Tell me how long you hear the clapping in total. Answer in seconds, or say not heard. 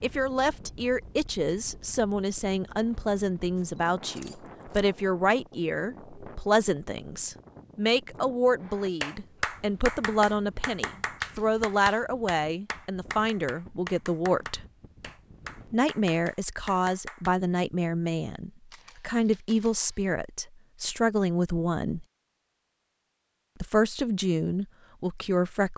9 s.